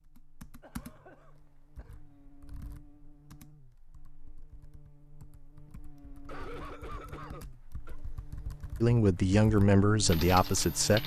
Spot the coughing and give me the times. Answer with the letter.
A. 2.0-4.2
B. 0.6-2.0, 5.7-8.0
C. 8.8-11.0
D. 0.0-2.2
B.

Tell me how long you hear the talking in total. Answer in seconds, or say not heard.
2 s.